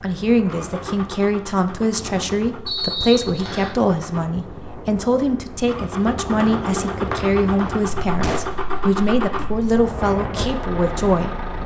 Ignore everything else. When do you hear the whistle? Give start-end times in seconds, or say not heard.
2.6-3.8, 6.4-7.9.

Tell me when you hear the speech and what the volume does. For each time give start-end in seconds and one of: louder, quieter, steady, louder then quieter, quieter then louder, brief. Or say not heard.
0.0-11.4 steady.